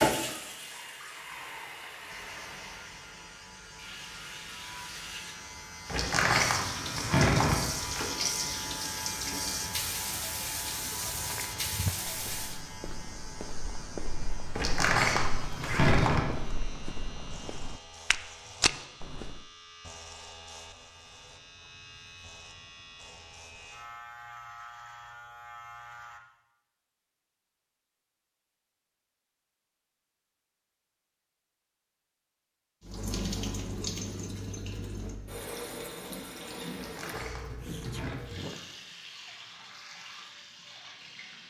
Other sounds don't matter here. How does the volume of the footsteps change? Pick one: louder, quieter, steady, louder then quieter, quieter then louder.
louder.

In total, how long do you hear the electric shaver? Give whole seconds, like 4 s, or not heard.
24 s.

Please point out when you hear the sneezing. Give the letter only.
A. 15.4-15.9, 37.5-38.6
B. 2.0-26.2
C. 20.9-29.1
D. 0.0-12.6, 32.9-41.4
A.